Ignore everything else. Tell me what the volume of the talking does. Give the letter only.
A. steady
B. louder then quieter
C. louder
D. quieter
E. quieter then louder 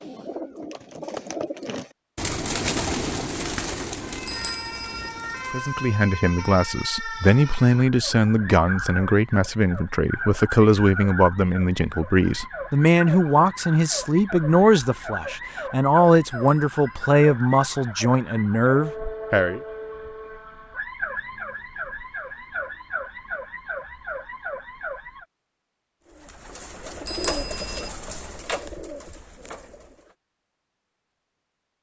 A.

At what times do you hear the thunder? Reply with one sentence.
You can't hear the thunder here.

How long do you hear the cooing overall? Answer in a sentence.
You can hear the cooing for 10 seconds altogether.